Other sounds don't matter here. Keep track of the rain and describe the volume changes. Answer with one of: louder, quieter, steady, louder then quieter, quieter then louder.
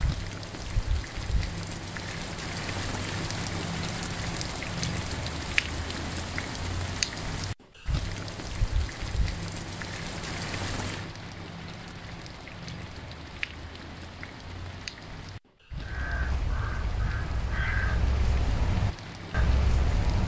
quieter.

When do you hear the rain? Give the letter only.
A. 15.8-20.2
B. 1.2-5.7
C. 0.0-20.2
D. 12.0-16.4
C.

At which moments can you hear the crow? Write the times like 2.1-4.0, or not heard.
15.8-20.2.